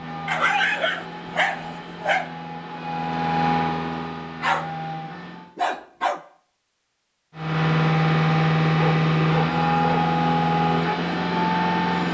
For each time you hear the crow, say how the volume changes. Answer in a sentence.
The crow can't be heard in this clip.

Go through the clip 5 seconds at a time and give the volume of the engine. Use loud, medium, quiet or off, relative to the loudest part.
medium, loud, loud.